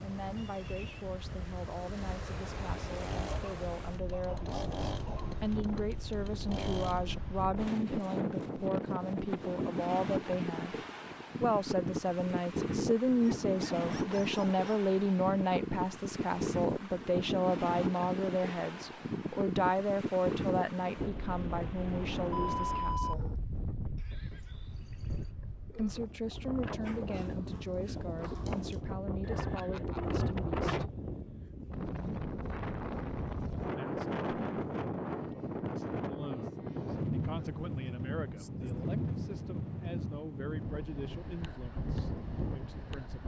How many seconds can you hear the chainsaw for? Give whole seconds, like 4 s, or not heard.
4 s.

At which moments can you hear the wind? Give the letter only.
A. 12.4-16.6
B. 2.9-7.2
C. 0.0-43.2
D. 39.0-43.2
C.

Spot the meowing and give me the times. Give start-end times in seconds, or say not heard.
not heard.